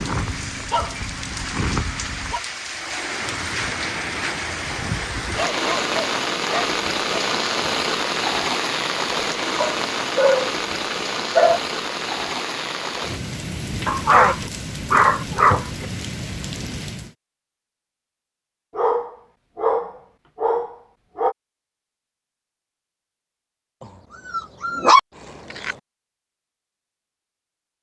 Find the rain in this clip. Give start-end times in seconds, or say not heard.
0.0-17.1.